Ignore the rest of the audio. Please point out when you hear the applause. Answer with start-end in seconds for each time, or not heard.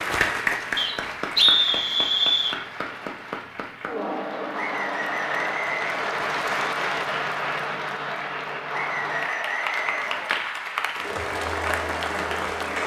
0.0-12.8.